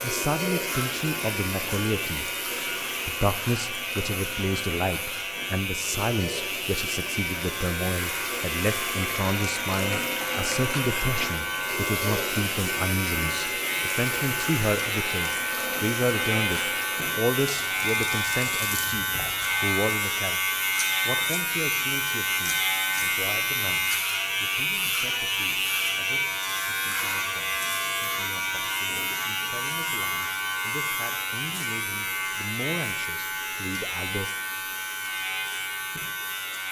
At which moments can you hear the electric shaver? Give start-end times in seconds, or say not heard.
0.0-36.6.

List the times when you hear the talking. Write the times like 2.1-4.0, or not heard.
0.0-2.3, 3.0-34.3.